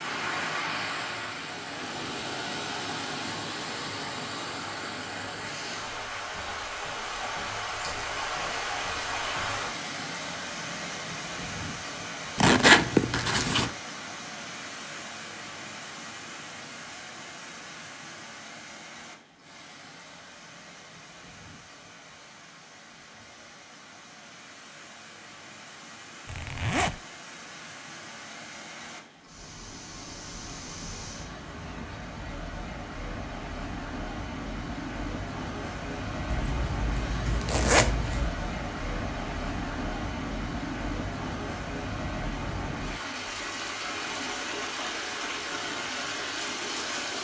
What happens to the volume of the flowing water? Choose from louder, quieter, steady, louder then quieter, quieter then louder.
quieter then louder.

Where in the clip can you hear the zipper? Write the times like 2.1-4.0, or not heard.
12.3-13.7, 26.2-27.0, 36.3-38.3.